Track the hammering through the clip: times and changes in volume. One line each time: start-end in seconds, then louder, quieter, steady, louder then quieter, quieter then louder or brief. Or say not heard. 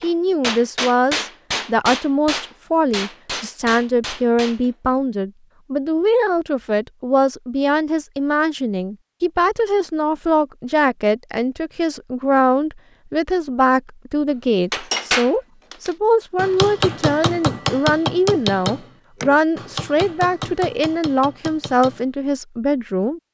0.0-4.8 quieter
14.7-22.1 quieter.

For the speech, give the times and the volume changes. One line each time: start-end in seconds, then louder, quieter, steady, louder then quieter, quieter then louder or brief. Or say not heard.
0.0-23.2 steady.